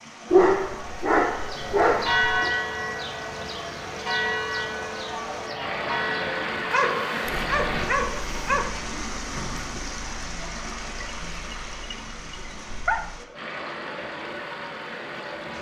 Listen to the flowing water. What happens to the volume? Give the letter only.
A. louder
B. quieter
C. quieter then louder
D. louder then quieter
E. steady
D.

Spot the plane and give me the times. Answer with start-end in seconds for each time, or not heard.
not heard.